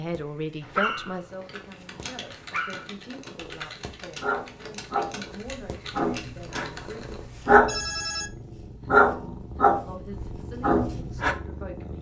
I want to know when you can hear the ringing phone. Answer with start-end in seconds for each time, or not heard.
7.7-8.3.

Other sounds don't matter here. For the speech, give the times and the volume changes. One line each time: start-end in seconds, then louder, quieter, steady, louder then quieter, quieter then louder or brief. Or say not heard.
0.0-7.2 quieter
9.7-11.9 brief.